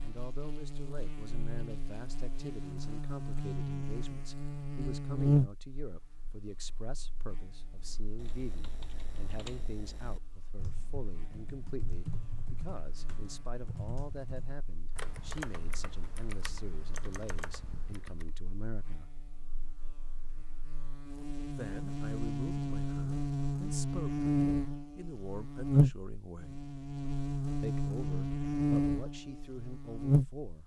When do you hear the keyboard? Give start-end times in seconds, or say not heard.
7.7-18.3.